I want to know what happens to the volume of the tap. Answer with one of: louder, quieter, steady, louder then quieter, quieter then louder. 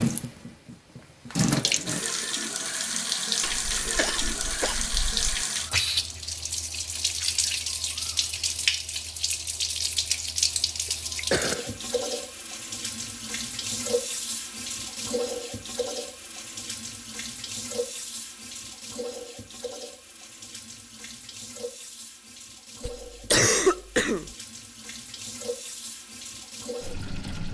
quieter.